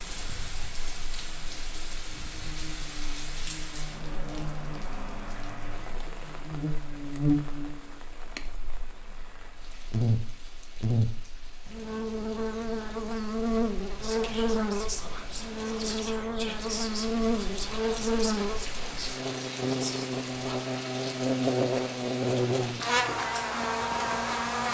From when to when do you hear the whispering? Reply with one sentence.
You can hear the whispering from 14.0 to 20.6 s.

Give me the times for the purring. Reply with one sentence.
The purring can't be heard in this clip.